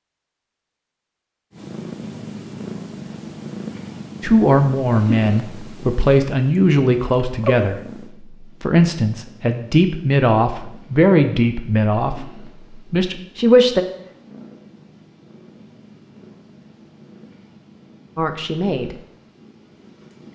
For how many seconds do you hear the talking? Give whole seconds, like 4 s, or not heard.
10 s.